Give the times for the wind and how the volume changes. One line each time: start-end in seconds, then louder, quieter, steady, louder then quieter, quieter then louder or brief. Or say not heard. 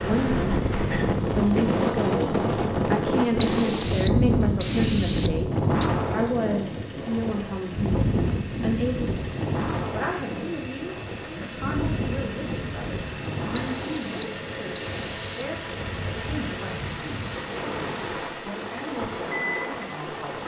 0.0-20.4 quieter.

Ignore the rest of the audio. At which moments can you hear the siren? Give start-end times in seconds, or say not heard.
not heard.